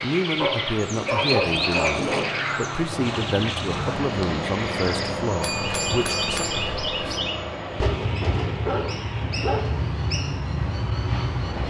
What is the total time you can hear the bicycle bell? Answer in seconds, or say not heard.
2 s.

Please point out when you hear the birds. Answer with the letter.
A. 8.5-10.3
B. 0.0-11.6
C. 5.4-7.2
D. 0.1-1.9
B.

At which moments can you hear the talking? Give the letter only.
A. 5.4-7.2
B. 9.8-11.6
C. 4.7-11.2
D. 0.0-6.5
D.